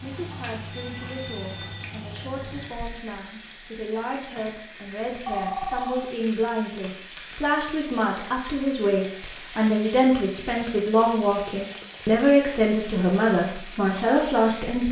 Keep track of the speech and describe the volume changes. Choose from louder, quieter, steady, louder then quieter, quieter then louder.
louder.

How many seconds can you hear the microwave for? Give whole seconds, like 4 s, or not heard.
3 s.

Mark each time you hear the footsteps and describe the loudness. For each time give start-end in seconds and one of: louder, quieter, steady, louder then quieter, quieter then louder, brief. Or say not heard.
not heard.